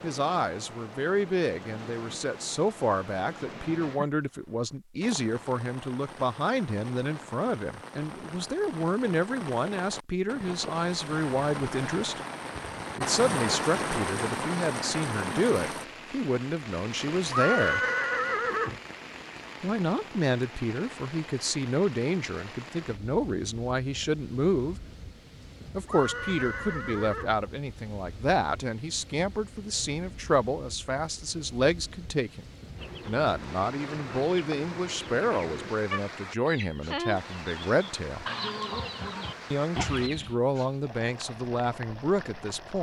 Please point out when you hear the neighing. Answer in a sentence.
The neighing can be heard from 17.3 to 18.8 s and from 25.9 to 27.4 s.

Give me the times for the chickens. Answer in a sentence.
The chickens can be heard from 32.8 to 40.4 s.